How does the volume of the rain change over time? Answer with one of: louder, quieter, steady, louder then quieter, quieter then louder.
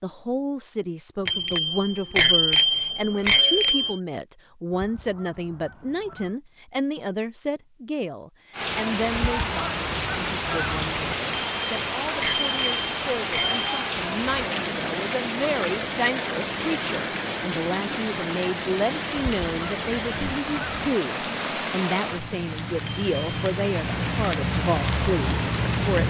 steady.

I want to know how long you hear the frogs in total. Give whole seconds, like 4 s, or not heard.
not heard.